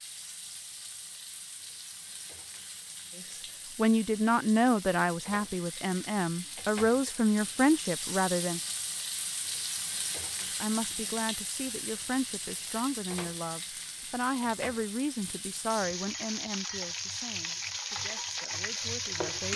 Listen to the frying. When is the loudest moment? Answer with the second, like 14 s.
19 s.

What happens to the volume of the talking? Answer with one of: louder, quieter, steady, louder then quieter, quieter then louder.
quieter.